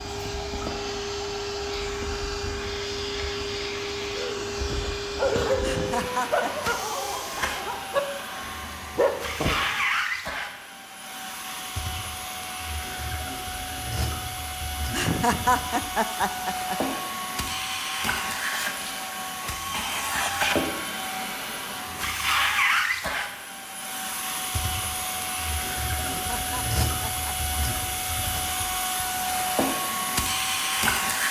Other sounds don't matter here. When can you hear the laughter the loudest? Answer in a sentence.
The volume of the laughter peaks at 15 seconds.